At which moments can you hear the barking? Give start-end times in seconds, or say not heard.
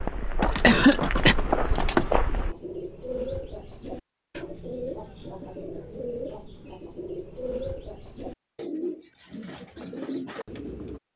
not heard.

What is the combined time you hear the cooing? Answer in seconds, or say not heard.
9 s.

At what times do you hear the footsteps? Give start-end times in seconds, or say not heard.
0.0-2.5.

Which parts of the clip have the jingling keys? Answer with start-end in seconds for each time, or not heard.
0.4-2.1.